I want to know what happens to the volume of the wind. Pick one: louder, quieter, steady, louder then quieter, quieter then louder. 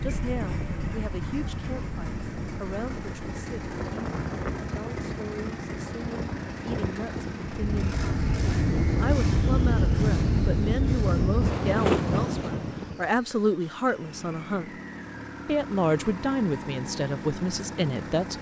louder.